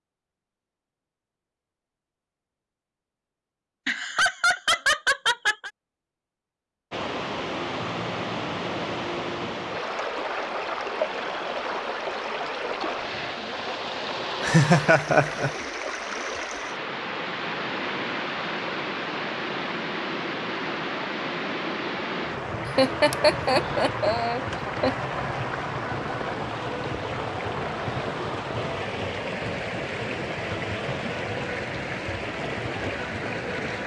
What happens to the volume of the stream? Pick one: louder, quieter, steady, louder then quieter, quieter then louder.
steady.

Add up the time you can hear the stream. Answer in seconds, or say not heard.
27 s.